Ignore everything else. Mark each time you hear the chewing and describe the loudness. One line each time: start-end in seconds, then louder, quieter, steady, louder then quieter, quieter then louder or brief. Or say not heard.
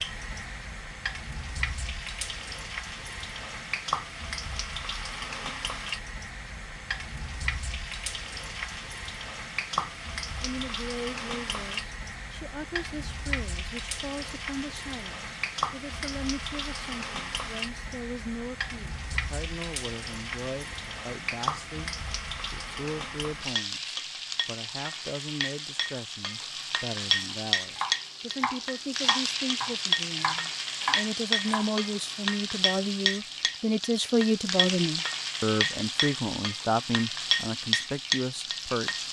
not heard.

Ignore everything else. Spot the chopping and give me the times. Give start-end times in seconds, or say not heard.
27.3-31.9.